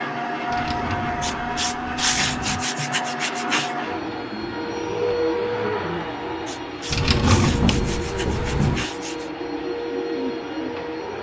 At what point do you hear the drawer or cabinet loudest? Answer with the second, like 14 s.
7 s.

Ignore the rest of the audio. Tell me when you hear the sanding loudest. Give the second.
2 s.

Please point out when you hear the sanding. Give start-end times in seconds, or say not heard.
1.2-3.8, 6.5-9.3.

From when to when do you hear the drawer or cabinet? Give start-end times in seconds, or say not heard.
0.5-2.6, 6.9-8.8.